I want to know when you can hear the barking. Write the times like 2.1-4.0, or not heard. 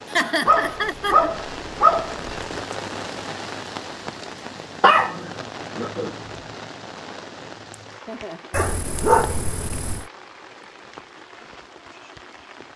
0.5-2.5, 4.8-6.1, 8.5-10.1.